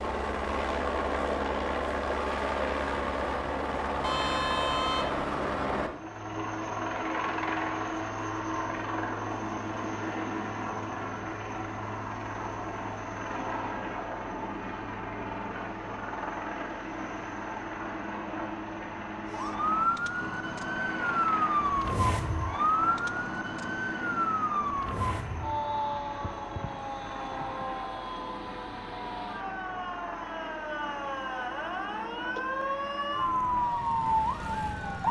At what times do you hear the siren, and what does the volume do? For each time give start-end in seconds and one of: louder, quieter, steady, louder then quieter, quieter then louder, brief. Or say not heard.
19.2-35.0 quieter then louder.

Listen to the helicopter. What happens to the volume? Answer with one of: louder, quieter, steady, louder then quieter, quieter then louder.
quieter.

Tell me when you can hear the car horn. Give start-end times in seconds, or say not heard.
4.0-5.2.